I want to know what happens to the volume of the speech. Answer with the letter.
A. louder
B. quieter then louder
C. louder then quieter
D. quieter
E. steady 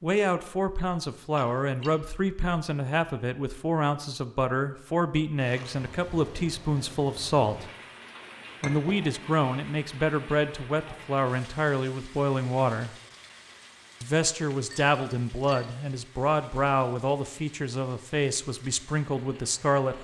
E.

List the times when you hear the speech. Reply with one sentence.
You can hear the speech from 0.0 to 7.7 s, from 8.6 to 12.9 s and from 14.0 to 19.9 s.